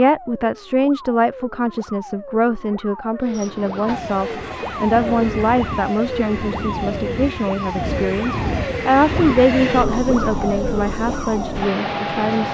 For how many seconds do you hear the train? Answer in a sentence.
You can hear the train for 9 seconds altogether.